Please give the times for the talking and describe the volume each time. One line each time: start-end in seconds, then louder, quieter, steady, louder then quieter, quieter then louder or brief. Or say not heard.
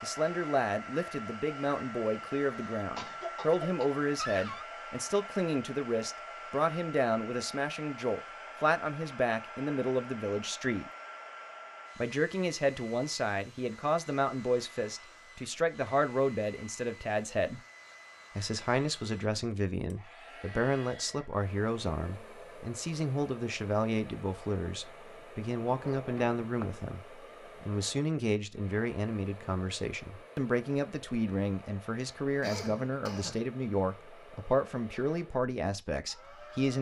0.0-10.9 steady
11.9-17.6 steady
18.4-36.7 steady.